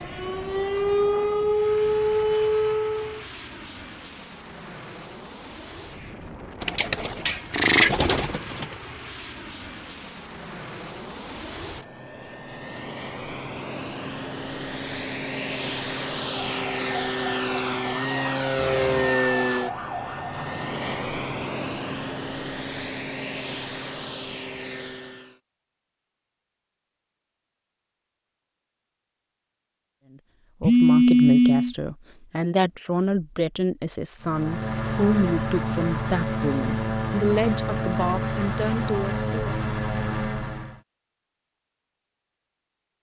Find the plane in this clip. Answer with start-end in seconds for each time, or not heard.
0.0-25.4, 34.2-40.8.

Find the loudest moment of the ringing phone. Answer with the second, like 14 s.
31 s.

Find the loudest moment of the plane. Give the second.
19 s.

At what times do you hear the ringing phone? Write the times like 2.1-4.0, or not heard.
18.6-19.0, 30.6-31.8.